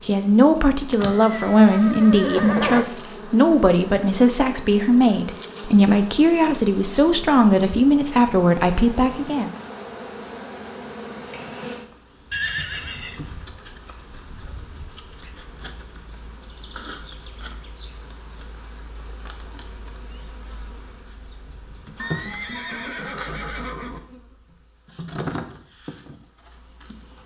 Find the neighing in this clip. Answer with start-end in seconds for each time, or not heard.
0.9-2.9, 12.3-13.4, 21.9-24.0.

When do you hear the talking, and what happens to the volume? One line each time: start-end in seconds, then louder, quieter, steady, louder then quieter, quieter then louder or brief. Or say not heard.
0.1-9.5 steady.